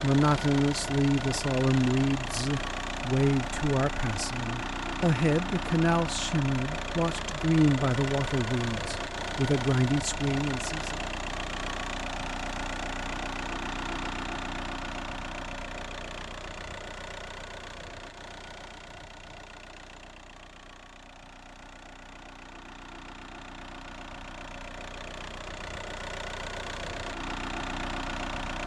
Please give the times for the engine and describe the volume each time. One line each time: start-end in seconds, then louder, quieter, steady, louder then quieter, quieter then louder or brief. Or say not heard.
0.0-28.6 quieter then louder.